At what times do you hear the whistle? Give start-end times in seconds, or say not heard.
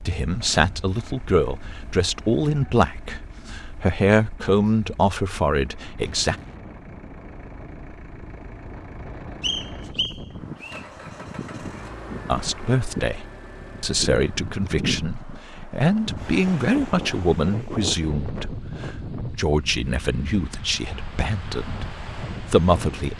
9.4-10.8.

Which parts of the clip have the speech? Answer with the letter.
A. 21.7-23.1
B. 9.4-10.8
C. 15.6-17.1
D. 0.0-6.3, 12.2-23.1
D.